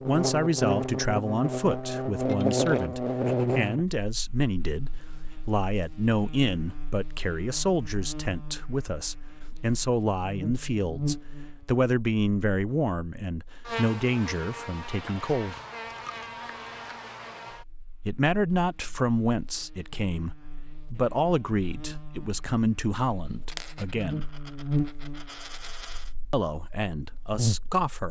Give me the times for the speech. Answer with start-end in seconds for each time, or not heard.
0.1-15.6, 18.1-24.2, 26.3-28.0.